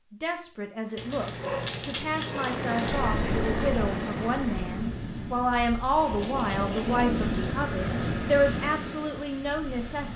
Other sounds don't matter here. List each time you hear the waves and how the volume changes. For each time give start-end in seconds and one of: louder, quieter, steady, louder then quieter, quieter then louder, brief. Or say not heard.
2.9-10.1 louder then quieter.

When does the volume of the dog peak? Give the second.
2 s.